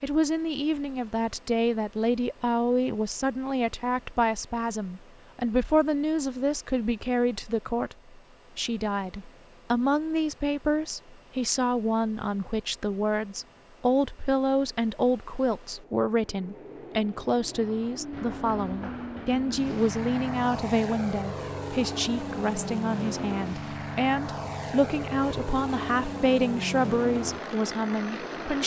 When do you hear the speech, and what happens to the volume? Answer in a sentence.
You can hear the speech from 0.0 to 8.0 s, at a steady volume; and from 8.6 to 28.6 s, at a steady volume.